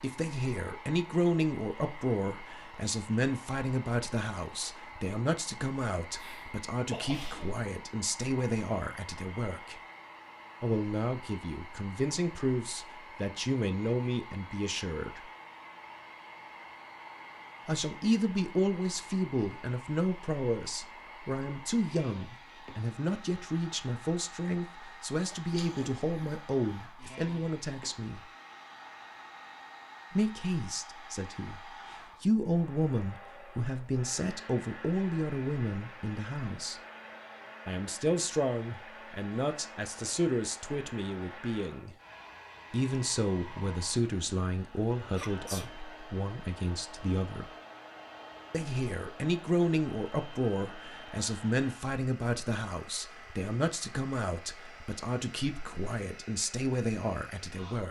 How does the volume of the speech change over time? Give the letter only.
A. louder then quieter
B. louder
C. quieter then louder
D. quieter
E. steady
E.